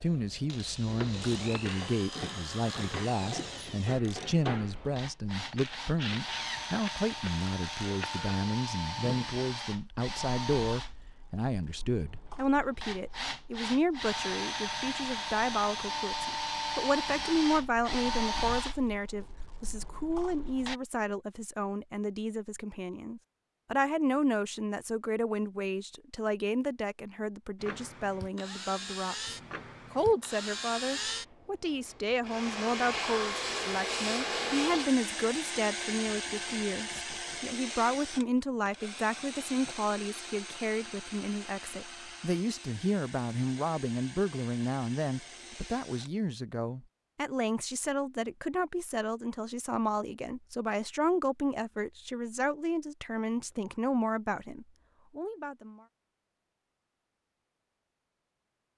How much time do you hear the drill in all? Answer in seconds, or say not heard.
39 s.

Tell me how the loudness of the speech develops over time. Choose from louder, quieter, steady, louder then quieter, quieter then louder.
steady.